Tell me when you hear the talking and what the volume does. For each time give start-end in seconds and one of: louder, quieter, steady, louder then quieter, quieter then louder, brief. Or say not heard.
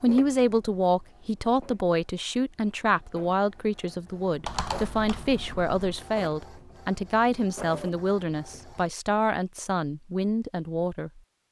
0.0-11.2 steady.